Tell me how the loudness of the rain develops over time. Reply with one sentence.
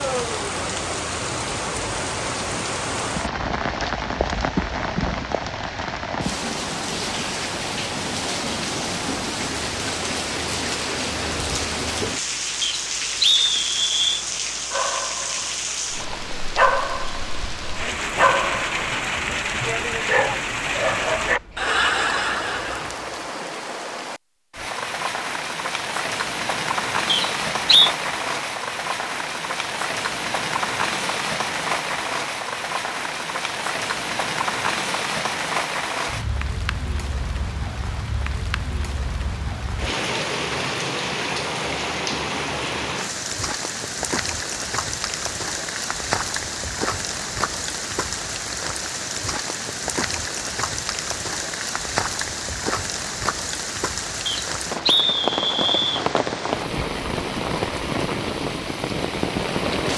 The loudness of the rain stays about the same.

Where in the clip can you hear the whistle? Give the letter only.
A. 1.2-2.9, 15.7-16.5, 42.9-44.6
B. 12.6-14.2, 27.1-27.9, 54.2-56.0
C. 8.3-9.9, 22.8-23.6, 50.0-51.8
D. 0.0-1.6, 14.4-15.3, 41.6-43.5
B.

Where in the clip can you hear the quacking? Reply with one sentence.
You can't hear the quacking here.